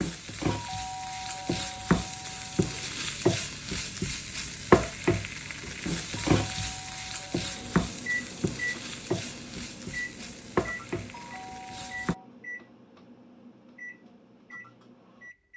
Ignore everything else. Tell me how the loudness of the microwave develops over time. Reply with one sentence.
The volume of the microwave goes down.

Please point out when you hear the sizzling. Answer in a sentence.
The sizzling can be heard from 0.0 to 12.2 s.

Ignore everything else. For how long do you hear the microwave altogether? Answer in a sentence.
The microwave can be heard for 8 seconds in total.